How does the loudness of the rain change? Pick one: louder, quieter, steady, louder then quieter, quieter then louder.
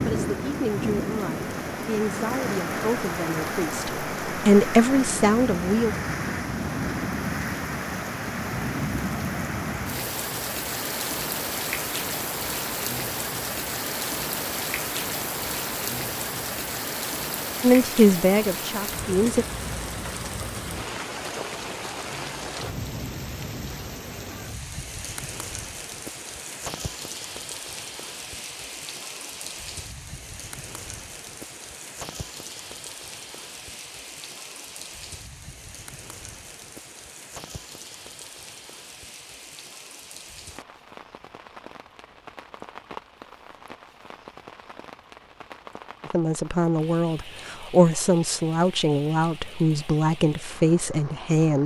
quieter.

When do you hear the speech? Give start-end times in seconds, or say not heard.
0.1-6.0, 17.6-19.4, 46.0-51.6.